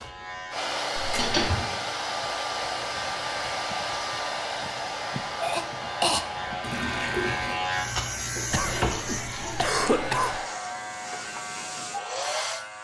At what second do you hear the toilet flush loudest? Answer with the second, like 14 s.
7 s.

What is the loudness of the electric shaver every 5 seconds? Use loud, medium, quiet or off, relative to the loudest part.
medium, loud, medium.